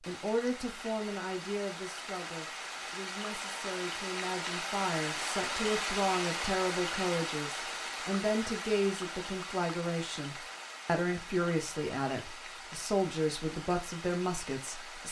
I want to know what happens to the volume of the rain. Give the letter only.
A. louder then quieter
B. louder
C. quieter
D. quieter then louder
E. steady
A.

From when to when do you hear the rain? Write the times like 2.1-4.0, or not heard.
0.0-15.0.